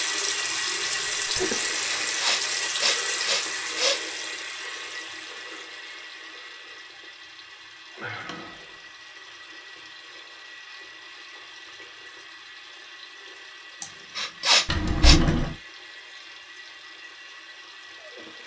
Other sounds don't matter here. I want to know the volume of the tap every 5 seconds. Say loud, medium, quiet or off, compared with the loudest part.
loud, quiet, quiet, quiet.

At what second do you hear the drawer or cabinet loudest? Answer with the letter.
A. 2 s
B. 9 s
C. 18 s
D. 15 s
D.